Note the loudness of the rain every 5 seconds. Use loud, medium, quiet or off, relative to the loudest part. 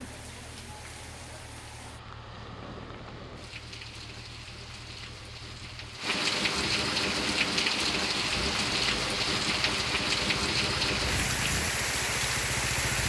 quiet, loud, loud.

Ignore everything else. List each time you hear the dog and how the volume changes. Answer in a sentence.
You can't hear the dog here.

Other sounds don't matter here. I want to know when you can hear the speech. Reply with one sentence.
The speech can't be heard in this clip.